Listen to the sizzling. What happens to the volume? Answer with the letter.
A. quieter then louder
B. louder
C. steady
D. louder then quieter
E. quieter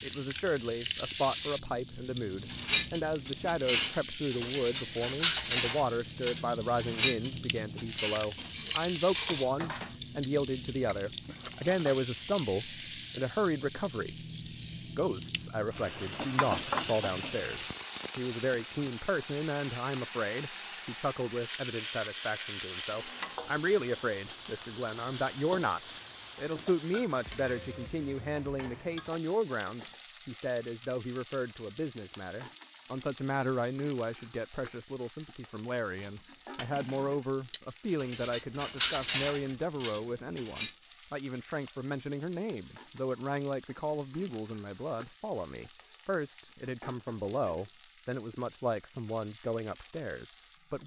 E.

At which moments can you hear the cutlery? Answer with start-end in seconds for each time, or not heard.
2.5-12.0, 35.9-40.7.